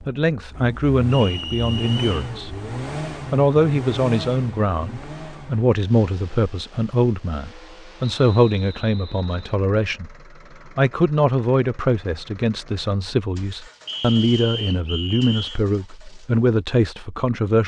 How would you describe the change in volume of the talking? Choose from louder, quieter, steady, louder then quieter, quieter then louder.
steady.